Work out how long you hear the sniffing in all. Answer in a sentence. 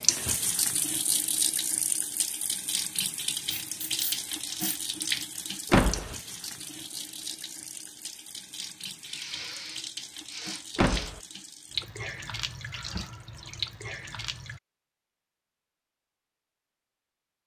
The sniffing can be heard for 3 seconds in total.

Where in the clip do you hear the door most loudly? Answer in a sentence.
The volume of the door peaks at 6 seconds.